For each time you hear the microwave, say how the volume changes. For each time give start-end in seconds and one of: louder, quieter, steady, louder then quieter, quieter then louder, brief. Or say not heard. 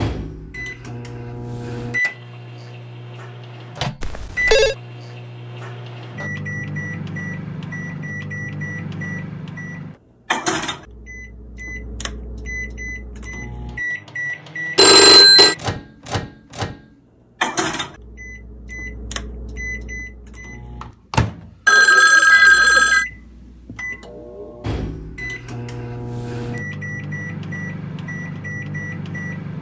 0.0-29.5 steady.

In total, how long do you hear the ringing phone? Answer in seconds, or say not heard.
3 s.